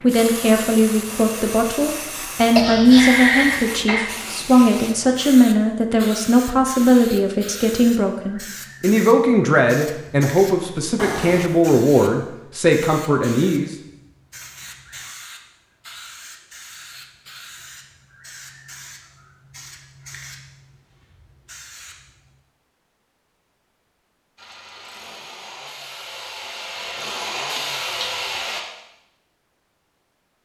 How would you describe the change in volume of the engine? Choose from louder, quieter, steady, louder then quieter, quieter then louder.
louder.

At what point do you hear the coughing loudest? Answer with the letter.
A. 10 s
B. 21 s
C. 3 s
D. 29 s
C.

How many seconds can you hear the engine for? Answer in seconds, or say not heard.
4 s.